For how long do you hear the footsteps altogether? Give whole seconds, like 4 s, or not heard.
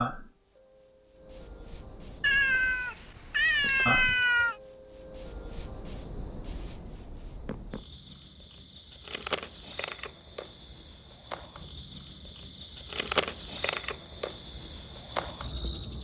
not heard.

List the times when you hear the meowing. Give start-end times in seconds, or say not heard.
2.2-4.5.